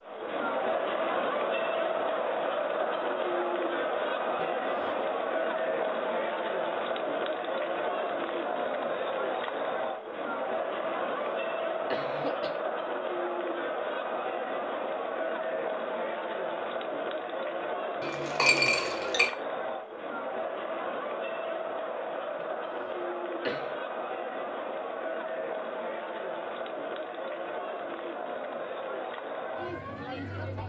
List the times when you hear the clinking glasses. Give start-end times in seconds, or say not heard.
18.0-19.3.